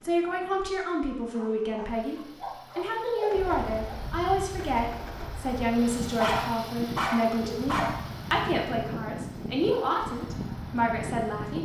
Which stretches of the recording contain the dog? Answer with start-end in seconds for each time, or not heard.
1.3-4.0, 6.2-8.1.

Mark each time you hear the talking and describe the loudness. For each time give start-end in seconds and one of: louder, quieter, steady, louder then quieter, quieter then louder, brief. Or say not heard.
0.0-11.6 steady.